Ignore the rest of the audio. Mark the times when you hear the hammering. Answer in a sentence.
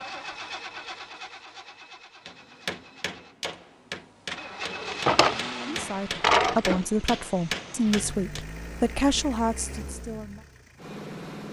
You can hear the hammering from 2.2 to 8.4 s.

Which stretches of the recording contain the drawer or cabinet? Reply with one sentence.
The drawer or cabinet can be heard from 4.7 to 6.8 s.